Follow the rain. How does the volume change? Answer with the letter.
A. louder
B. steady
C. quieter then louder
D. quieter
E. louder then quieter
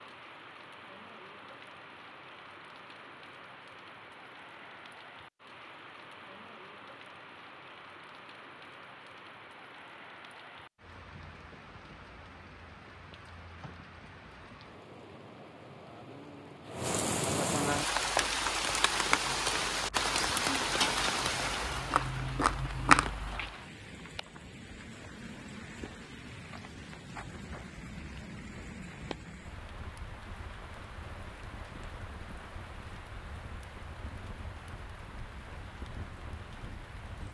E.